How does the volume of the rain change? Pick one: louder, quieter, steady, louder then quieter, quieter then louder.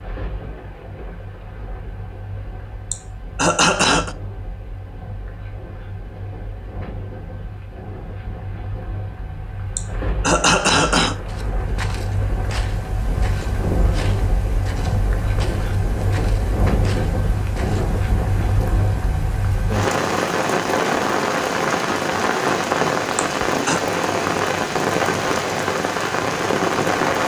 louder.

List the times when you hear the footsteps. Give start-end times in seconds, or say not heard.
11.2-17.9.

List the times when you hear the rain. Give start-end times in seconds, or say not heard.
0.0-27.2.